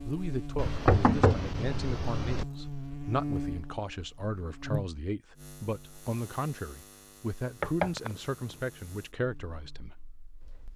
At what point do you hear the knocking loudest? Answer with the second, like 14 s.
1 s.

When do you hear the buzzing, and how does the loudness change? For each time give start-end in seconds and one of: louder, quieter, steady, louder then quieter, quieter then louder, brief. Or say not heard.
0.0-10.7 quieter.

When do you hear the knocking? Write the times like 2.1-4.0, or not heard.
0.6-2.5, 7.6-8.6.